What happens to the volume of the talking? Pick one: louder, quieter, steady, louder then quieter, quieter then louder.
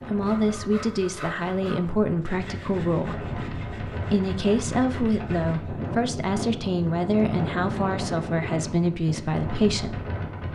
steady.